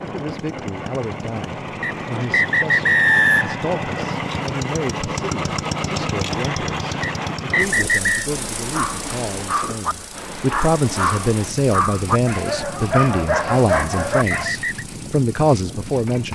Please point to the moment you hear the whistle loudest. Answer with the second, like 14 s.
3 s.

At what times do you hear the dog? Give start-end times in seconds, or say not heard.
8.7-14.5.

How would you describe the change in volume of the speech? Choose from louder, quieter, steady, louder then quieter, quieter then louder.
louder.